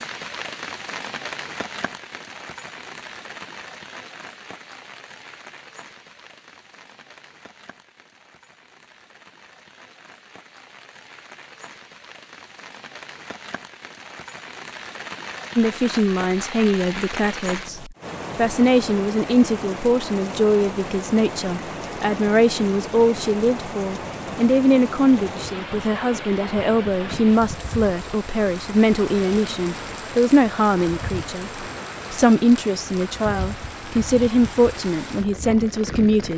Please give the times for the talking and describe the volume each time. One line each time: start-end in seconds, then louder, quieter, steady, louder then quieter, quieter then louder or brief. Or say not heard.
15.6-36.3 steady.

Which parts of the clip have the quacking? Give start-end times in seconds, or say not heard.
not heard.